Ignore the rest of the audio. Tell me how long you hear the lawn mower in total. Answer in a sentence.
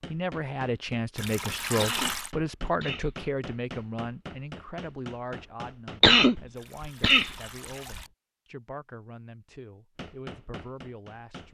You can't hear the lawn mower here.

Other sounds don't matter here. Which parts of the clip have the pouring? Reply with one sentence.
You can hear the pouring from 1.1 to 2.3 s and from 6.5 to 8.1 s.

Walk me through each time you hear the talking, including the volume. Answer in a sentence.
The talking can be heard from 0.1 to 11.5 s, getting quieter.